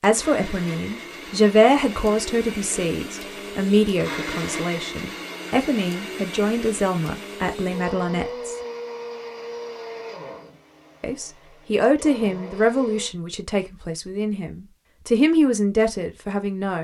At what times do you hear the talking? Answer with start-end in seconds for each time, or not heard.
0.0-8.6, 11.0-16.7.